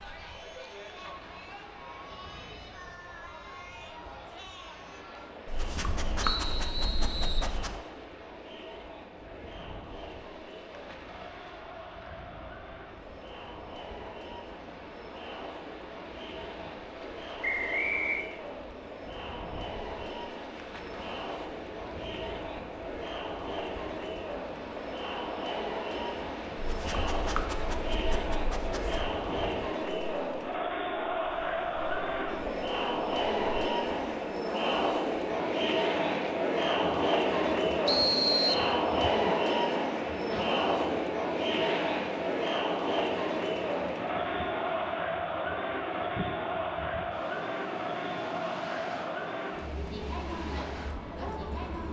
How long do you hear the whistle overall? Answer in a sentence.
You can hear the whistle for 3 seconds altogether.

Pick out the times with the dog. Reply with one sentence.
The dog can be heard from 5.5 to 7.8 s and from 26.6 to 29.1 s.